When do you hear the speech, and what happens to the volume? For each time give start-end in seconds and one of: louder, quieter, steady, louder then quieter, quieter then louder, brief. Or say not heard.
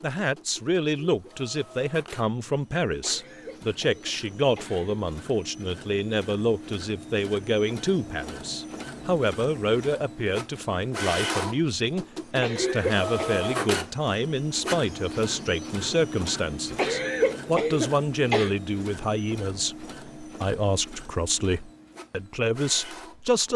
0.0-23.5 steady.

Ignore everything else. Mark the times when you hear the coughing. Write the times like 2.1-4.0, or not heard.
3.0-5.0, 12.4-13.4, 16.8-18.5.